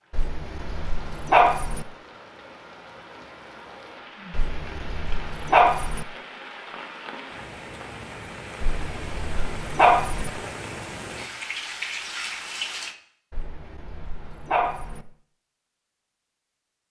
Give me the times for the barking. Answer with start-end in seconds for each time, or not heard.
0.1-1.9, 4.3-6.0, 8.6-10.3, 13.3-15.1.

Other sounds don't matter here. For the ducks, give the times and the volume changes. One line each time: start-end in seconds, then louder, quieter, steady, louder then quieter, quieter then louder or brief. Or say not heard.
not heard.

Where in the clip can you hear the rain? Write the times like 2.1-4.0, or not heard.
0.0-12.9.